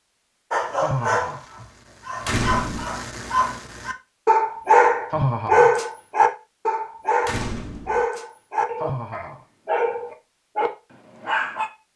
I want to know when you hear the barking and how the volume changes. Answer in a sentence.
You can hear the barking from 0.5 to 11.7 s, getting louder then quieter.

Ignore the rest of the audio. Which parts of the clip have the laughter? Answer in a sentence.
The laughter can be heard from 0.8 to 1.4 s, from 5.1 to 5.8 s and from 8.8 to 9.4 s.